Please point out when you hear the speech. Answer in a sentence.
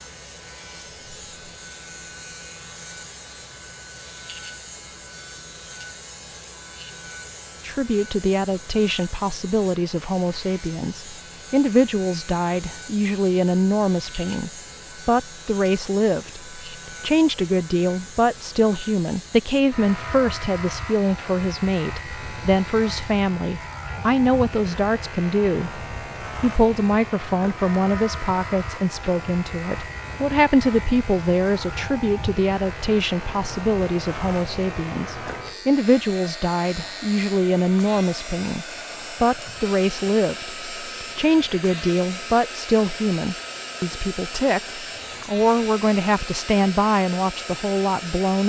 You can hear the speech from 7.7 to 48.4 s.